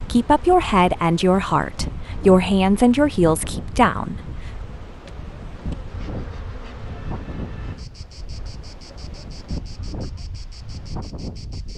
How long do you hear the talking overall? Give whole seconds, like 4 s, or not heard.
4 s.